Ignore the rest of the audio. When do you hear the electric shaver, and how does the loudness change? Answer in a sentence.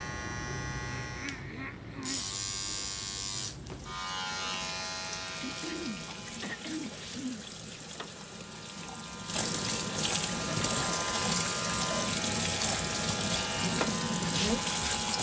The electric shaver can be heard from 0.0 to 15.1 s, getting quieter then louder.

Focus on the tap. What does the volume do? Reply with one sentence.
The loudness of the tap goes up.